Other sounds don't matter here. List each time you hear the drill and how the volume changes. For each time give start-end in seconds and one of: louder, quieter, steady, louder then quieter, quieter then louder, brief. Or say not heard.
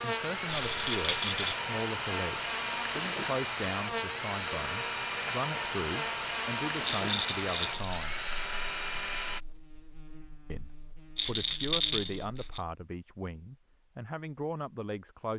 0.0-9.4 steady.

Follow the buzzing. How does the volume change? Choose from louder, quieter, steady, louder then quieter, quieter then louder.
quieter.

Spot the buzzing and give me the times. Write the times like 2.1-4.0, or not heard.
0.0-12.7.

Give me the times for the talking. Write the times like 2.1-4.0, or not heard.
0.0-8.2, 10.5-15.3.